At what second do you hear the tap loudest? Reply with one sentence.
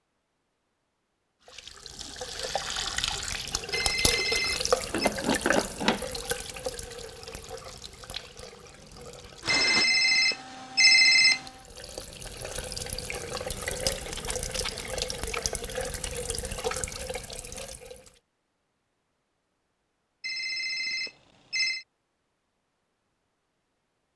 The loudest moment of the tap is at 5 seconds.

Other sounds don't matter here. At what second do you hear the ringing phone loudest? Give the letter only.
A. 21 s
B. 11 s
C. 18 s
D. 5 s
B.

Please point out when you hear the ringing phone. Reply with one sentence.
The ringing phone can be heard from 3.7 to 5.1 s, from 9.4 to 11.4 s and from 20.2 to 21.9 s.